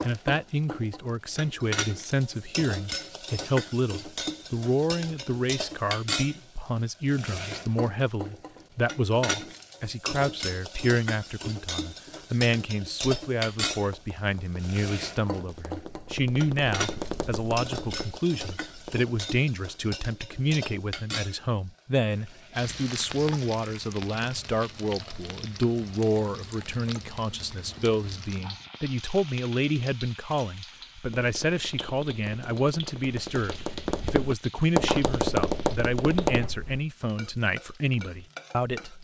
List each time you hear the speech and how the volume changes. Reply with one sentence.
The speech can be heard from 0.0 to 39.0 s, at a steady volume.